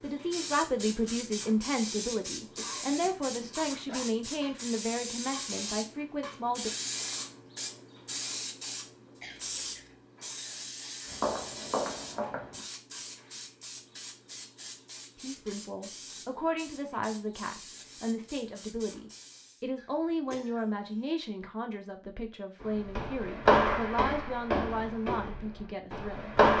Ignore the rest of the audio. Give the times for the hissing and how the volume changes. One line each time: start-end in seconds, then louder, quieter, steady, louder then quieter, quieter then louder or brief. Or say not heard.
0.0-19.6 quieter.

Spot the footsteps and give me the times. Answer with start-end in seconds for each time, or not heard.
11.1-12.6, 22.6-26.5.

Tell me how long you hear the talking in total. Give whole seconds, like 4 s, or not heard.
18 s.